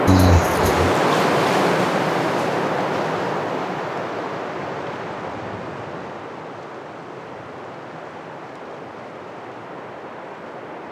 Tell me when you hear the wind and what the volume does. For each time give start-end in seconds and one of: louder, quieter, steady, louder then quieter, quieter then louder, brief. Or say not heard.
0.0-10.8 quieter.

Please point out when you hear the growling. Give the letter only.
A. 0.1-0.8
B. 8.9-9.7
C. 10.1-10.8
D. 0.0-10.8
A.